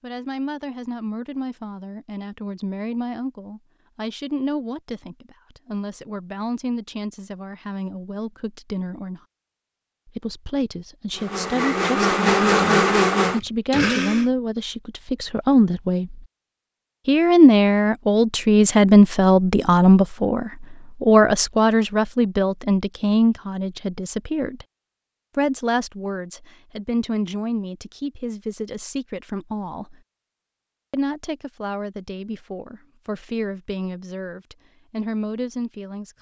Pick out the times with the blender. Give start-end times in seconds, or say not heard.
11.2-14.3.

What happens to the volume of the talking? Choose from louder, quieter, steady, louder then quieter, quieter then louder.
louder then quieter.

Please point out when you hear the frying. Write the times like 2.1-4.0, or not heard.
not heard.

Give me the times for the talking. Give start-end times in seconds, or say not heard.
0.0-9.2, 10.1-16.2, 17.1-24.6, 25.4-30.0, 30.9-36.1.